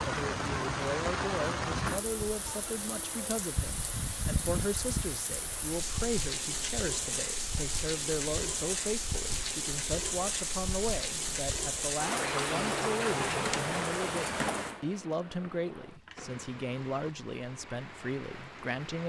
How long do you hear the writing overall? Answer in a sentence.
The writing can't be heard in this clip.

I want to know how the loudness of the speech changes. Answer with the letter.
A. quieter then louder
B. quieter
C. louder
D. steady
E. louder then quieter
D.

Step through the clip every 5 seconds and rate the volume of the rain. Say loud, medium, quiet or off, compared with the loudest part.
loud, loud, loud, quiet.